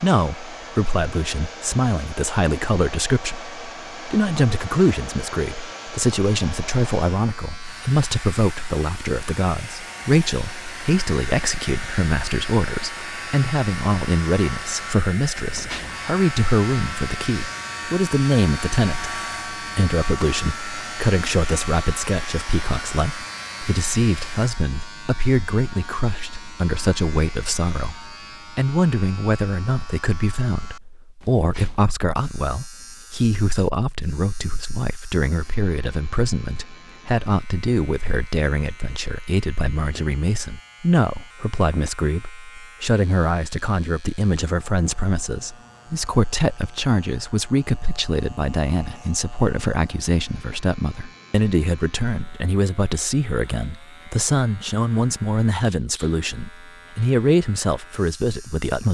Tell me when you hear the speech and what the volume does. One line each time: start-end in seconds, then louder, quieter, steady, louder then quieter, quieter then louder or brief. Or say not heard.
0.0-58.9 steady.